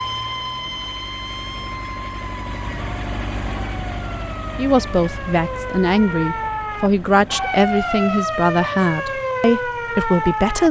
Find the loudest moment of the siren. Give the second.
8 s.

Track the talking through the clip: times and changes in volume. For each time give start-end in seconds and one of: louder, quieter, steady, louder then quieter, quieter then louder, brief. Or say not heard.
4.5-10.6 steady.